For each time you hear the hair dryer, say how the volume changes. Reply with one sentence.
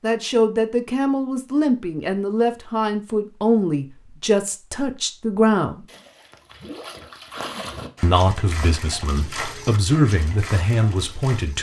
The hair dryer can't be heard in this clip.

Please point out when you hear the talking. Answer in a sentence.
The talking can be heard from 0.0 to 5.8 s and from 8.0 to 11.5 s.